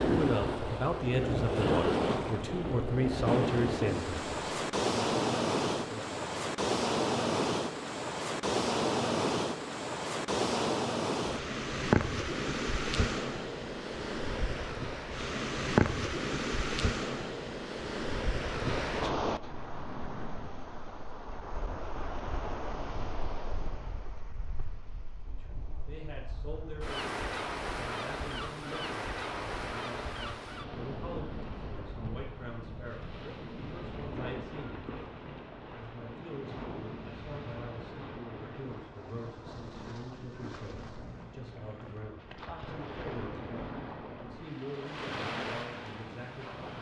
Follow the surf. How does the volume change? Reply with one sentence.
The volume of the surf goes down.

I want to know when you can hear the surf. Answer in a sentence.
The surf can be heard from 0.0 to 46.7 s.